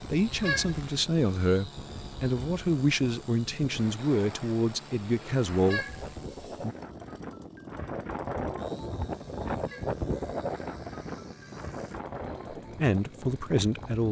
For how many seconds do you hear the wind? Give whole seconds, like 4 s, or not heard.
14 s.